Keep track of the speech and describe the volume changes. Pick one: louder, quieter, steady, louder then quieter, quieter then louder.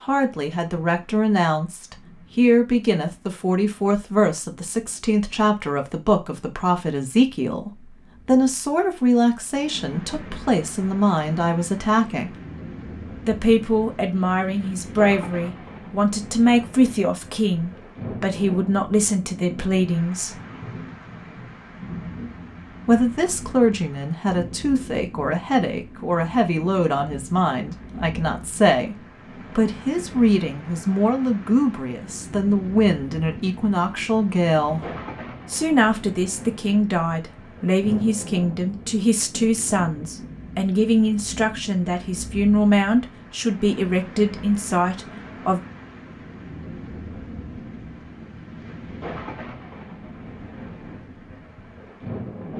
steady.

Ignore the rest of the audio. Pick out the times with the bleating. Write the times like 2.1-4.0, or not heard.
not heard.